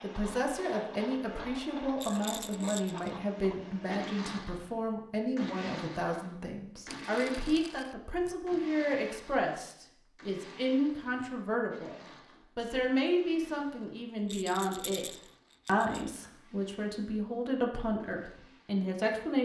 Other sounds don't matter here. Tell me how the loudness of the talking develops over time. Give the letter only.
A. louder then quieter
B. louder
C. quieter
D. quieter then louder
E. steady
E.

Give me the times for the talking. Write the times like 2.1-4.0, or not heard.
0.0-19.3.